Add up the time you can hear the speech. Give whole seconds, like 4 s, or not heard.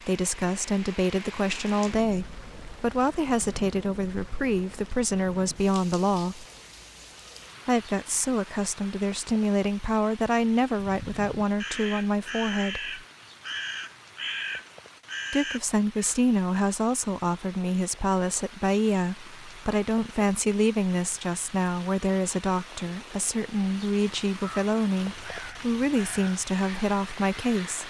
24 s.